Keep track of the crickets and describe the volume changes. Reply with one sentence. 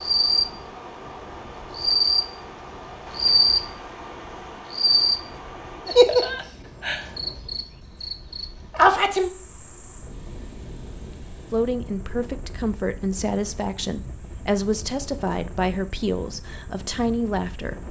The volume of the crickets goes down.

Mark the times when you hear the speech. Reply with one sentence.
You can hear the speech from 11.5 to 17.8 s.